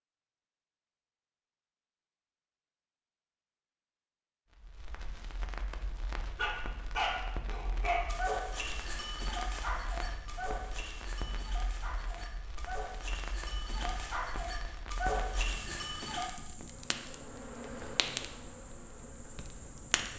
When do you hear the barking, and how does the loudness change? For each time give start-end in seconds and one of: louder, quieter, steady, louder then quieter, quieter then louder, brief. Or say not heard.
6.3-16.3 quieter then louder.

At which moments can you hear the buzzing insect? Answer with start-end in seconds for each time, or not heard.
16.5-20.1.